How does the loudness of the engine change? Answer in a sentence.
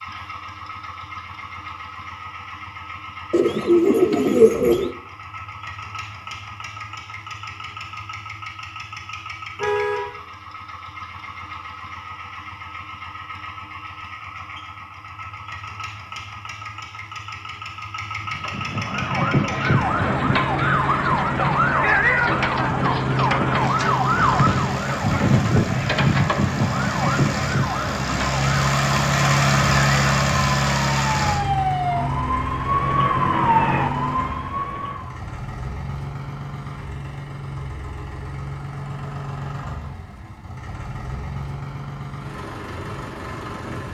The volume of the engine goes up, then down.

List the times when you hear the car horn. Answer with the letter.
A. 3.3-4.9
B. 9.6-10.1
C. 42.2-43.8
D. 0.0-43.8
B.